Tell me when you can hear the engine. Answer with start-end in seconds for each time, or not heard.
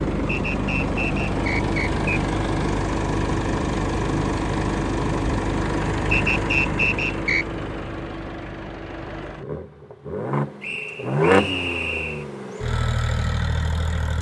0.0-14.1.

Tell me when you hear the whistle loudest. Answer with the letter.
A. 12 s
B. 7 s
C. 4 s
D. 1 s
B.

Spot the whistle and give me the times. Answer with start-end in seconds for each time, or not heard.
0.2-2.1, 6.1-7.5, 10.6-12.2.